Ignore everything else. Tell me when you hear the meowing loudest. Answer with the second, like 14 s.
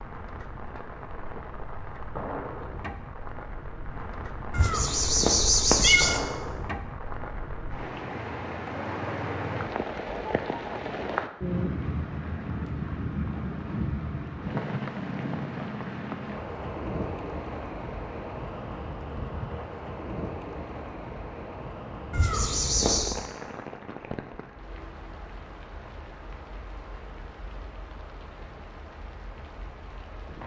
6 s.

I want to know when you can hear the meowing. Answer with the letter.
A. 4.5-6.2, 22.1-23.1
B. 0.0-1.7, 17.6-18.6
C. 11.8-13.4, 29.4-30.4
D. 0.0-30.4
A.